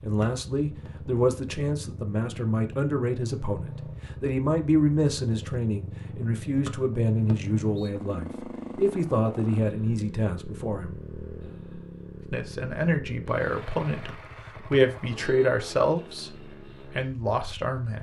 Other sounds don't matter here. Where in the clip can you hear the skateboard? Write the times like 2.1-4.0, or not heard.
not heard.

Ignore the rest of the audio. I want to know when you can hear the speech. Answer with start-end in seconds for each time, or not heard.
0.0-11.0, 12.3-17.9.